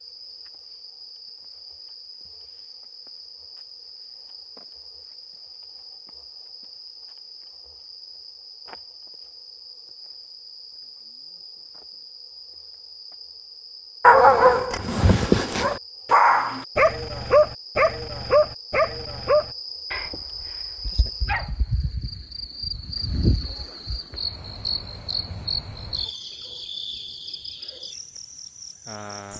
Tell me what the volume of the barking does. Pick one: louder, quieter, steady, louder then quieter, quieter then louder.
quieter.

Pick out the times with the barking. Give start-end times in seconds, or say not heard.
14.0-21.6.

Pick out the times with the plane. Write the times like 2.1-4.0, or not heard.
not heard.